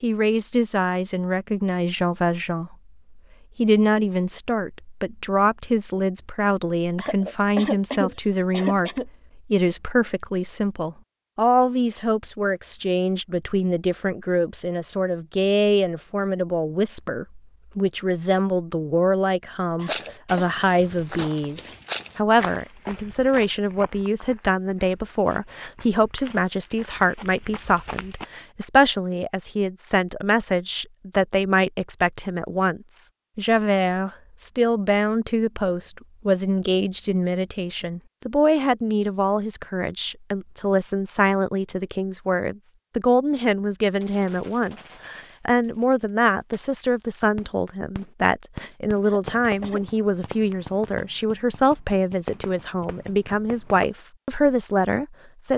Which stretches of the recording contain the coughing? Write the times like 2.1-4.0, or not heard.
7.0-9.1, 19.8-20.4, 49.0-49.9.